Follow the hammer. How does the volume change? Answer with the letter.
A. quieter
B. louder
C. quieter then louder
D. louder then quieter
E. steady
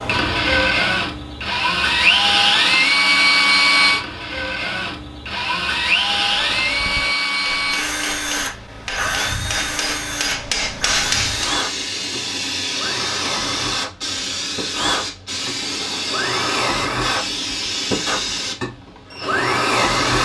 B.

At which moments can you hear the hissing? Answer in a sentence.
You can hear the hissing from 10.8 to 20.2 s.